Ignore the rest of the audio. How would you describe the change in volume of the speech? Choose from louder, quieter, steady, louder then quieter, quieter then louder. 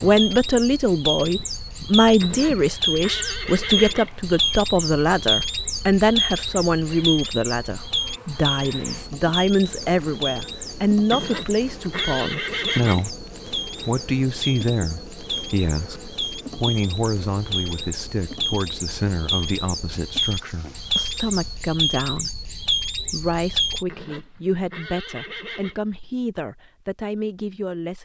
quieter.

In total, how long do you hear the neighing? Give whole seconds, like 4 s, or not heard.
6 s.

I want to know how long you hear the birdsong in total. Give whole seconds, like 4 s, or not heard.
24 s.